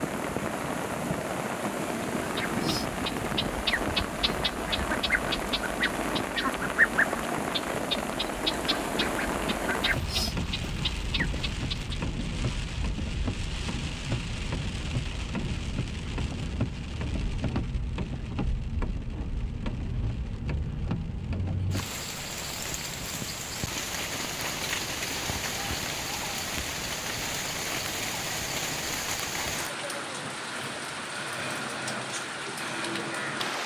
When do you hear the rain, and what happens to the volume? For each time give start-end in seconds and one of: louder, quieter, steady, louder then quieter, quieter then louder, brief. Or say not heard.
0.0-33.6 steady.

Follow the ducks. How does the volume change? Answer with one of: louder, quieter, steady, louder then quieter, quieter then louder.
louder then quieter.